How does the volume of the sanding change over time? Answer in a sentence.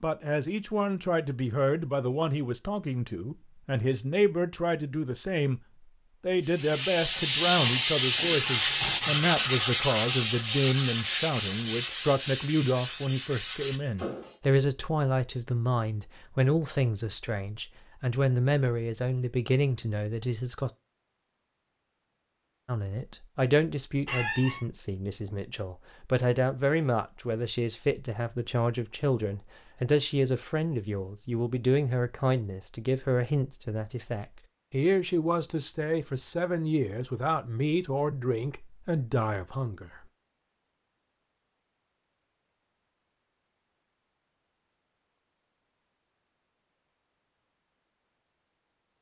The volume of the sanding goes down.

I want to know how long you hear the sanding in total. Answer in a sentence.
The sanding can be heard for 8 seconds in total.